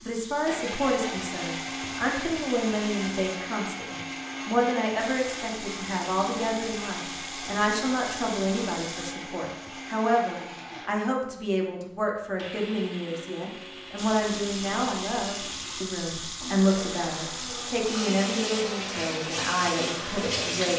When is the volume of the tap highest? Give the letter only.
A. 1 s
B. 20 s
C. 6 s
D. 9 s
B.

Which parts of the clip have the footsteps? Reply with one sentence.
You can't hear the footsteps here.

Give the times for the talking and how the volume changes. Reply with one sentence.
You can hear the talking from 0.0 to 20.7 s, at a steady volume.